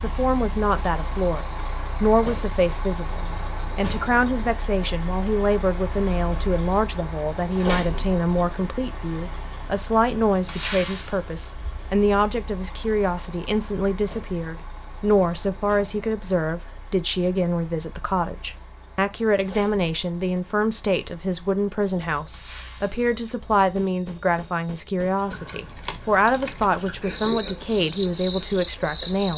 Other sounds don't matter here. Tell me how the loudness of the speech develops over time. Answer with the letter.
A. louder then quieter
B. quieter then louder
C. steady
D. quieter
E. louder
C.